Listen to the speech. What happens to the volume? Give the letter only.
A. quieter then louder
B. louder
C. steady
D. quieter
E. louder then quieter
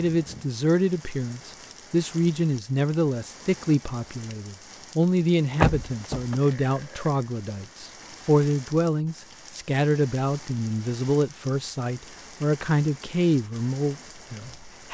C.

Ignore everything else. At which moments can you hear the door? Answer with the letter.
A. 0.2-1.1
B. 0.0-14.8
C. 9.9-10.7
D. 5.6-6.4
D.